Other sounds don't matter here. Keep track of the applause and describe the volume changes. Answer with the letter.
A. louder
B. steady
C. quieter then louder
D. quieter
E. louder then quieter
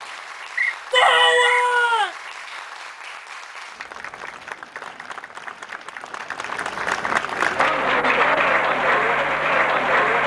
A.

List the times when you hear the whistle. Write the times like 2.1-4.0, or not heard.
0.6-1.7.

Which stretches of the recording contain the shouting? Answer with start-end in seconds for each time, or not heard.
0.9-2.1.